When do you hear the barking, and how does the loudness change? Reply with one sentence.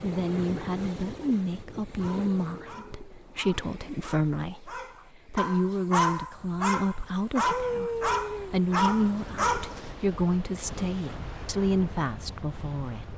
You can hear the barking from 1.9 to 9.9 s, getting louder.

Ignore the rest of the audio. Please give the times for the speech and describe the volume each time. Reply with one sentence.
The speech can be heard from 0.0 to 13.1 s, at a steady volume.